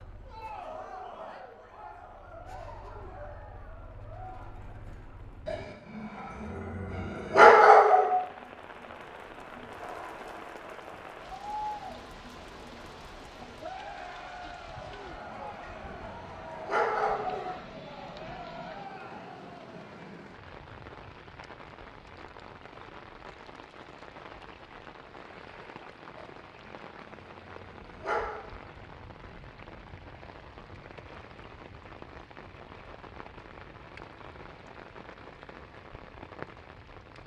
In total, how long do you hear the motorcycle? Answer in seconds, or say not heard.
6 s.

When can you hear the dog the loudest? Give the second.
8 s.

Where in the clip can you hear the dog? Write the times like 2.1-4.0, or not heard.
5.5-8.1, 14.8-17.6, 26.1-28.4.